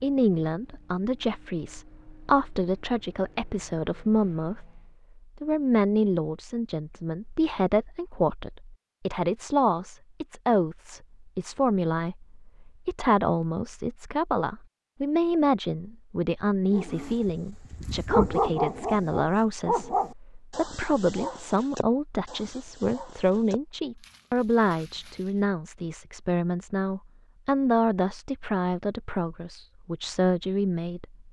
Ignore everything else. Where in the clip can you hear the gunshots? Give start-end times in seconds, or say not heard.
not heard.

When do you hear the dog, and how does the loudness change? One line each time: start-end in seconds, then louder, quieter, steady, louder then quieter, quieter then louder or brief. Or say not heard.
16.7-25.4 quieter.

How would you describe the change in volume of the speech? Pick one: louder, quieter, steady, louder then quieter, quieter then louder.
steady.